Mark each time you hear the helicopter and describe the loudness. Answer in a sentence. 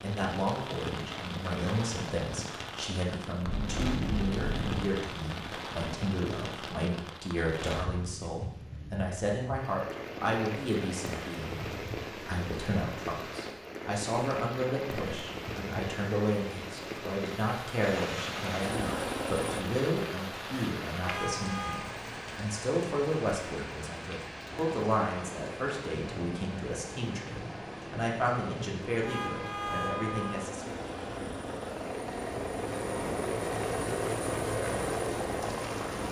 You can hear the helicopter briefly from 17.8 to 19.6 s; and from 24.5 to 36.0 s, getting louder.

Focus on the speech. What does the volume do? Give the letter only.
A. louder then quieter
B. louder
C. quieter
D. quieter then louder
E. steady
E.